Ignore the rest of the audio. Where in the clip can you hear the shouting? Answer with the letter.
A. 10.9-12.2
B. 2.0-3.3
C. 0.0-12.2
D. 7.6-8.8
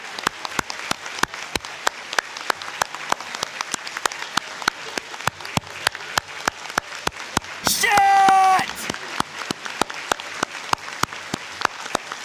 D.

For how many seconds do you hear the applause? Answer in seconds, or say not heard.
12 s.